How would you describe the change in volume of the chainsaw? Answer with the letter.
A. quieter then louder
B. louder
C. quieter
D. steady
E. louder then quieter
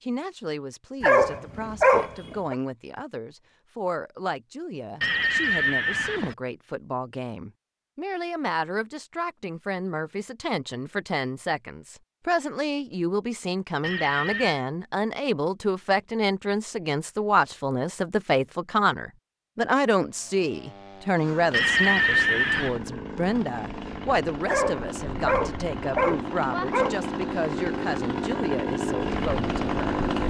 B.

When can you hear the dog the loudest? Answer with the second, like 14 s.
2 s.